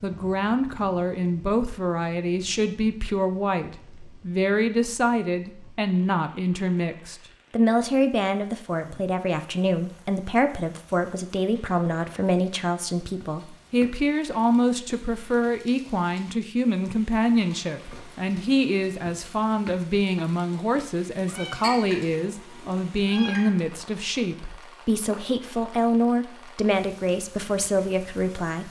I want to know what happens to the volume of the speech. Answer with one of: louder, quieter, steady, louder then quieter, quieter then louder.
steady.